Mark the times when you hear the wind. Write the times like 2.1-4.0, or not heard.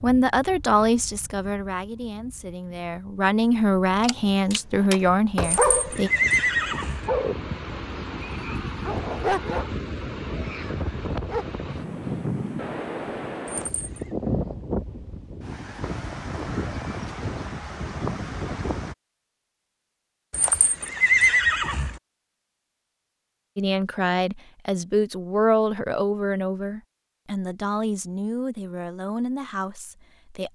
0.0-18.9.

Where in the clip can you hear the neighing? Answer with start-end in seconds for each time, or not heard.
5.4-7.1, 13.4-14.1, 20.3-22.0.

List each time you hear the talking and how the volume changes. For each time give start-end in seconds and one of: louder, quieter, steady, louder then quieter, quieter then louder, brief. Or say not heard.
0.0-6.1 quieter then louder
23.6-30.4 quieter.